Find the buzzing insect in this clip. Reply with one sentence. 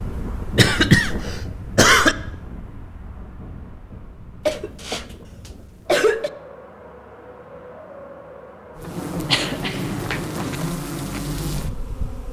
You can hear the buzzing insect from 8.8 to 12.2 s.